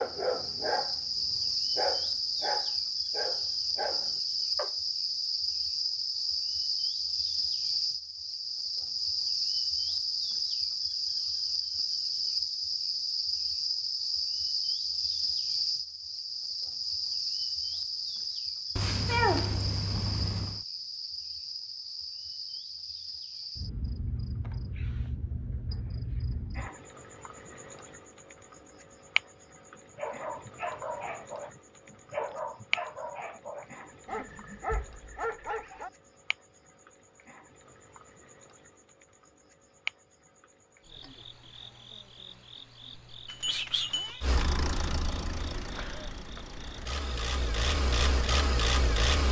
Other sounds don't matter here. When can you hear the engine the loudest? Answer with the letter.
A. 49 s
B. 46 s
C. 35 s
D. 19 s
A.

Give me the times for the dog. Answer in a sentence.
You can hear the dog from 0.0 to 4.7 s and from 29.8 to 35.9 s.